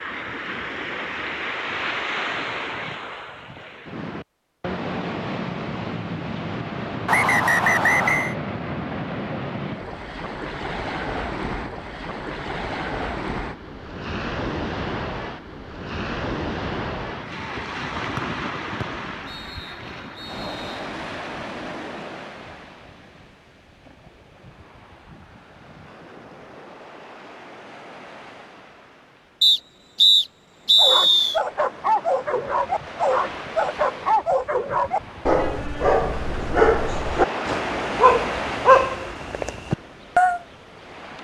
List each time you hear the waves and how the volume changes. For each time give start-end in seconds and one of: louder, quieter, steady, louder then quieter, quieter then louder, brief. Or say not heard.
0.0-41.1 quieter then louder.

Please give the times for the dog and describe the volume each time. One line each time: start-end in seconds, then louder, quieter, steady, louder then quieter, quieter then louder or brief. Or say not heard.
30.8-40.4 steady.